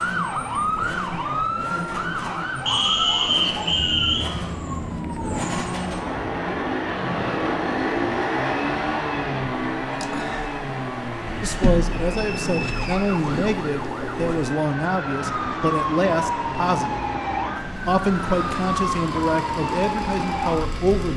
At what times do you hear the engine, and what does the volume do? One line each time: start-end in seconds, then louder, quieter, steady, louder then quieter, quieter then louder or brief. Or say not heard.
0.0-21.1 louder then quieter.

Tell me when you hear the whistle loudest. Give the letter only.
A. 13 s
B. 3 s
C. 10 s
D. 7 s
B.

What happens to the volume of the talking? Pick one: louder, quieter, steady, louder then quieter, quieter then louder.
steady.